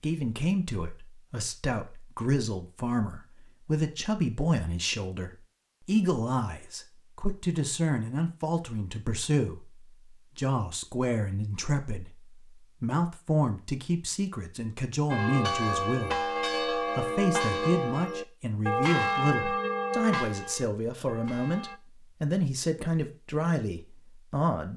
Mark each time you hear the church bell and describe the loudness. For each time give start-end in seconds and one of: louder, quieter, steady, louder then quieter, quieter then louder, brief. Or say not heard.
15.1-21.8 quieter.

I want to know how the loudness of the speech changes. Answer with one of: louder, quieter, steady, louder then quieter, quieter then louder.
steady.